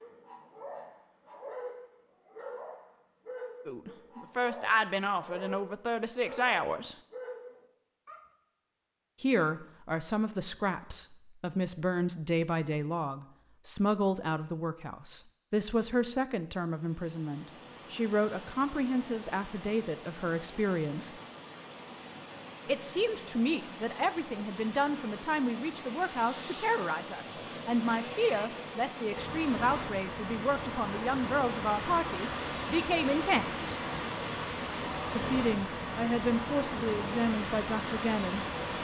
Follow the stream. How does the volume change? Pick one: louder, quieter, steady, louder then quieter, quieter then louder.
louder.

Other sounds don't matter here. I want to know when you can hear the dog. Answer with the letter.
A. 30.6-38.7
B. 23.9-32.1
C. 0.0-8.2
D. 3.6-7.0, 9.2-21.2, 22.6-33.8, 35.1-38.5
C.